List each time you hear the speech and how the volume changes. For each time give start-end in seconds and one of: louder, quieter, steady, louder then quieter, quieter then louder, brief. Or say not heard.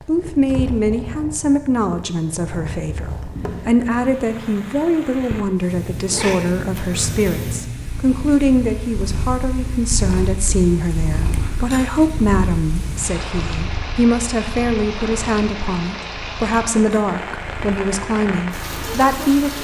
0.1-19.6 steady.